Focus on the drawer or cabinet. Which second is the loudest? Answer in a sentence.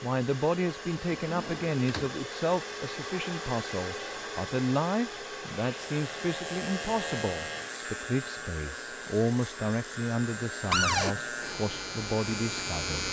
The loudest moment of the drawer or cabinet is at 11 seconds.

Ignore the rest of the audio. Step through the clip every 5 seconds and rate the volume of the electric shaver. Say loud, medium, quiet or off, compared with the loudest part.
off, loud, loud.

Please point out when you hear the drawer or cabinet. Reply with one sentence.
You can hear the drawer or cabinet from 1.1 to 2.1 s and from 10.7 to 11.2 s.